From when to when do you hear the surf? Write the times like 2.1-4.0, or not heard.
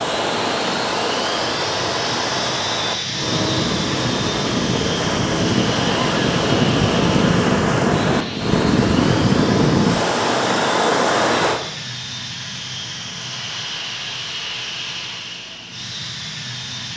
0.0-11.6.